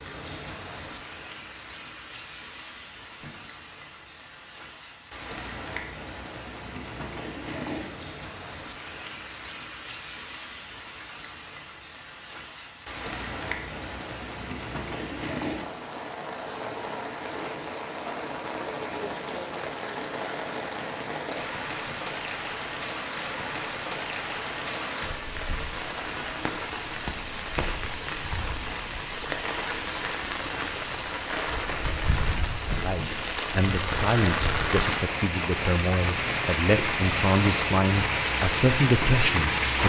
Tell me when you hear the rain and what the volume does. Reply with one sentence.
The rain can be heard from 0.0 to 39.8 s, getting louder.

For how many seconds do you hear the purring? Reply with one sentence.
You can't hear the purring here.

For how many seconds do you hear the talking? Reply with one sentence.
The talking can be heard for 7 seconds in total.